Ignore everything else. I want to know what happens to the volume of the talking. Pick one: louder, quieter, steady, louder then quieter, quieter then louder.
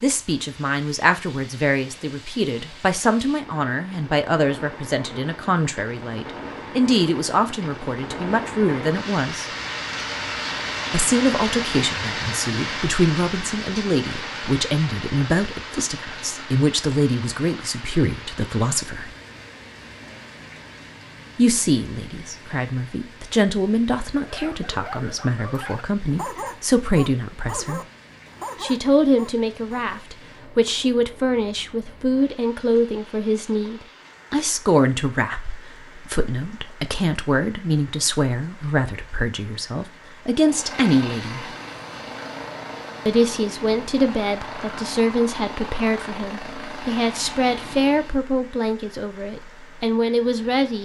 steady.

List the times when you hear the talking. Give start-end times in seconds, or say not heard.
0.0-9.4, 10.9-19.1, 21.4-27.8, 28.6-41.5, 43.0-50.8.